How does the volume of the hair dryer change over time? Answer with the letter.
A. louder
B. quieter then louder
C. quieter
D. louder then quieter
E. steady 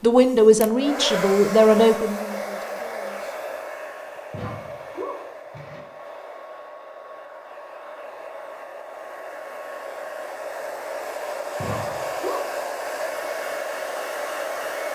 B.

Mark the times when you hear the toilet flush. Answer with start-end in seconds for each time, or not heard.
4.3-5.8, 11.6-12.5.